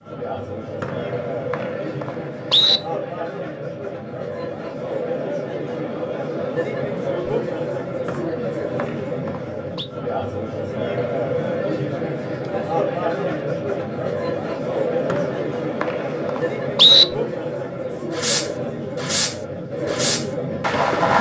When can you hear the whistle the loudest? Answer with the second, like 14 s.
17 s.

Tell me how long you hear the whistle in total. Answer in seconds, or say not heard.
6 s.